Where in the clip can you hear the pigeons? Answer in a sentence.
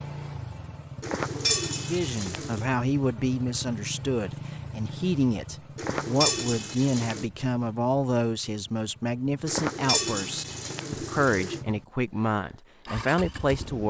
The pigeons can be heard from 1.0 to 2.6 s, from 5.8 to 7.2 s and from 9.4 to 11.6 s.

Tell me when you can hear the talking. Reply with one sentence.
The talking can be heard from 1.8 to 13.8 s.